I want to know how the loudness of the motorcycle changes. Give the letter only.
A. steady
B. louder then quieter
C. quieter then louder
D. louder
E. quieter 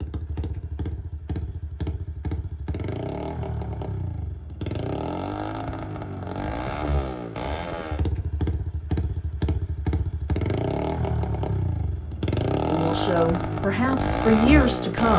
D.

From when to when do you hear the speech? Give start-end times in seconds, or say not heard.
12.7-15.1.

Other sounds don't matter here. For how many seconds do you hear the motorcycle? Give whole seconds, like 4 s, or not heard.
15 s.